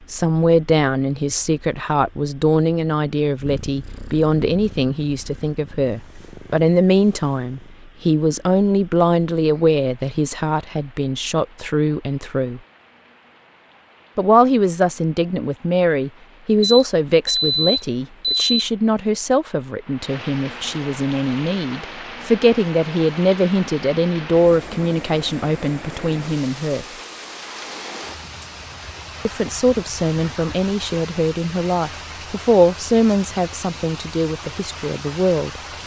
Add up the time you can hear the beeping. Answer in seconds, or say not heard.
2 s.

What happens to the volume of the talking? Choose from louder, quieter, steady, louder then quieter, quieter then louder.
steady.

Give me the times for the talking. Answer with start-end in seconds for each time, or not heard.
0.1-12.6, 14.2-26.9, 29.2-35.6.